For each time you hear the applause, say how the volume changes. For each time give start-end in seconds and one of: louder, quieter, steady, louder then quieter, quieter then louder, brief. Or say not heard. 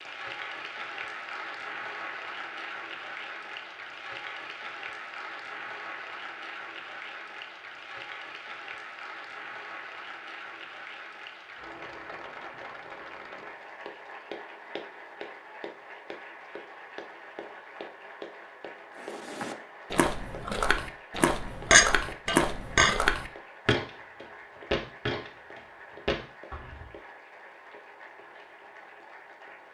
0.0-29.7 quieter.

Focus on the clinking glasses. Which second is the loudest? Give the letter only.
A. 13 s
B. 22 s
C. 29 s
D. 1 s
B.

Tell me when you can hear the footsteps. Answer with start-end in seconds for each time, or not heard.
19.0-26.9.